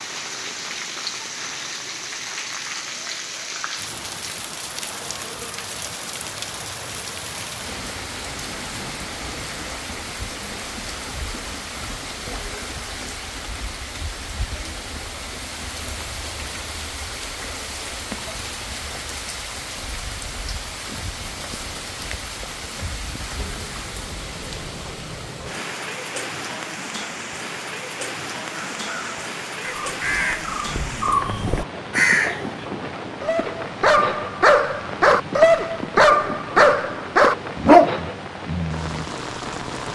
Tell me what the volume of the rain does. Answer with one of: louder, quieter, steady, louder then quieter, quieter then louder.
steady.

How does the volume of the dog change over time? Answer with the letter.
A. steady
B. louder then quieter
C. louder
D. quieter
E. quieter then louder
C.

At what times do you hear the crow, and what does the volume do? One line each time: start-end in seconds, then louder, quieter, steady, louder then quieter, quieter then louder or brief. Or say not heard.
28.5-32.6 louder.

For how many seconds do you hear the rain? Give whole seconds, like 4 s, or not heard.
40 s.